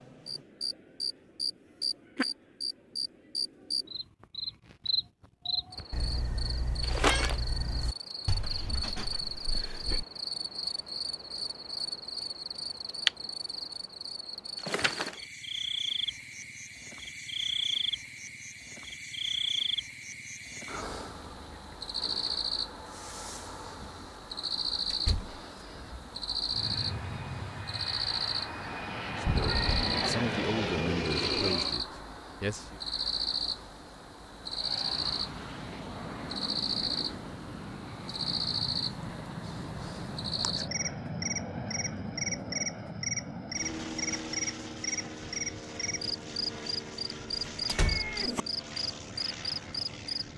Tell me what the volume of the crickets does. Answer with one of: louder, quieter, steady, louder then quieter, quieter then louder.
steady.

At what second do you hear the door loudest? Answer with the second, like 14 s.
48 s.